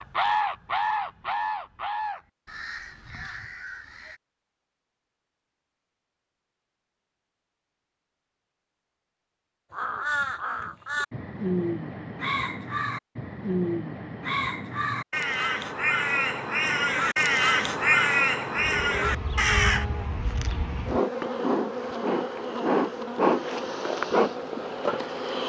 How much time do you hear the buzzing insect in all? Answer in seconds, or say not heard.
7 s.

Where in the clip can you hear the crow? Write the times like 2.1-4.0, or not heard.
0.0-4.2, 9.7-19.9.